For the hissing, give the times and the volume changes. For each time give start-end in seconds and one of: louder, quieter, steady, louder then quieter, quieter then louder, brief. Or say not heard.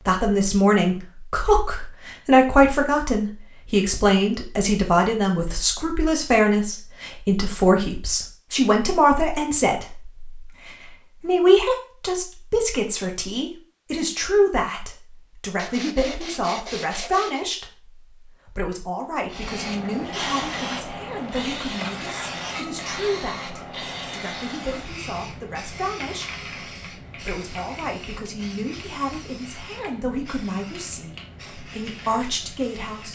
19.3-33.1 quieter.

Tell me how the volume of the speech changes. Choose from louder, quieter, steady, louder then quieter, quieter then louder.
quieter.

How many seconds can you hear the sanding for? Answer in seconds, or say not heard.
2 s.